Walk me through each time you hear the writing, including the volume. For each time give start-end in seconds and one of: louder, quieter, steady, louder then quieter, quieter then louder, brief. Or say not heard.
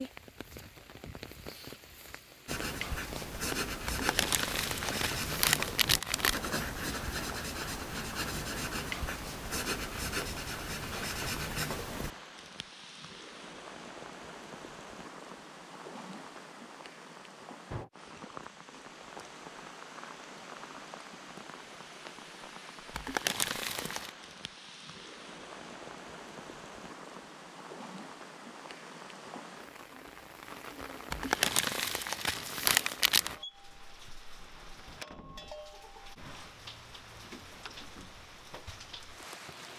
2.5-12.2 steady.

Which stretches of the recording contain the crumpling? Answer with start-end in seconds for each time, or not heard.
3.9-6.4, 22.9-24.1, 31.1-33.4.